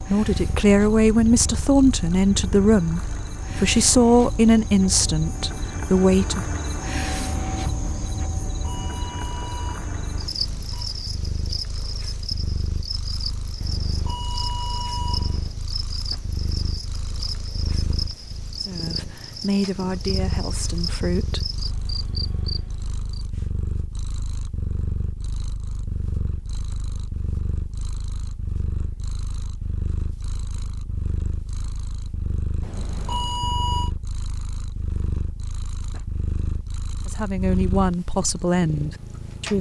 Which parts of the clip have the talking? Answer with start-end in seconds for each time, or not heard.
0.0-6.4, 18.6-21.4, 37.0-39.5.